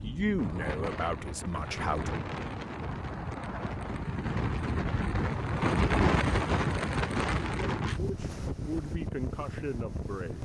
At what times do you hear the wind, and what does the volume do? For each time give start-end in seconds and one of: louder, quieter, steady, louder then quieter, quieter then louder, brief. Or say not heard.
0.0-10.4 louder then quieter.